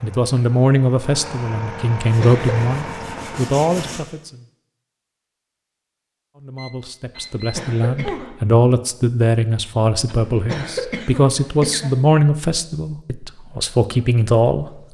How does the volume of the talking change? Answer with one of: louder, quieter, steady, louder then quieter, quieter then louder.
steady.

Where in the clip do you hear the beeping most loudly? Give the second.
8 s.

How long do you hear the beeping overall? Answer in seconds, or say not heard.
2 s.